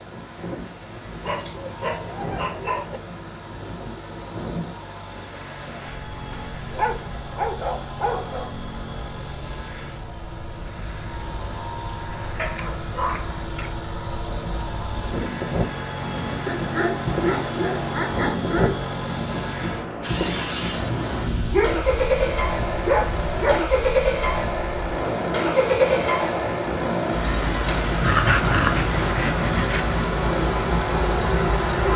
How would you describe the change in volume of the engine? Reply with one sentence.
The loudness of the engine goes up.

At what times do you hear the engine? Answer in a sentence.
You can hear the engine from 0.0 to 31.9 s.